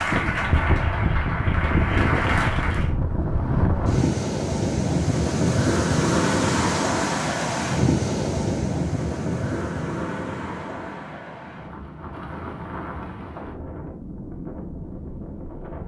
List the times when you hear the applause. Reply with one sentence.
You can hear the applause from 0.0 to 2.9 s.